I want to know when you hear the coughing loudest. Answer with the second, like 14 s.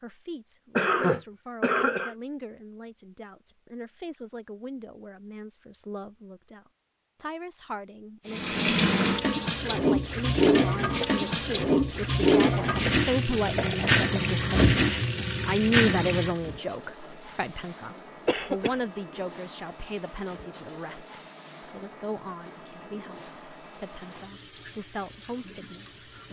1 s.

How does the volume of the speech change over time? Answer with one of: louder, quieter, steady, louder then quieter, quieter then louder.
louder then quieter.